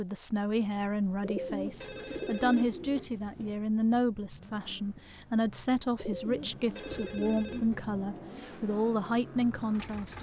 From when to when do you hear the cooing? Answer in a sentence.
The cooing can be heard from 1.2 to 3.5 s and from 6.0 to 8.4 s.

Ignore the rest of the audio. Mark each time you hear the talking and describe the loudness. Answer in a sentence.
You can hear the talking from 0.0 to 10.1 s, at a steady volume.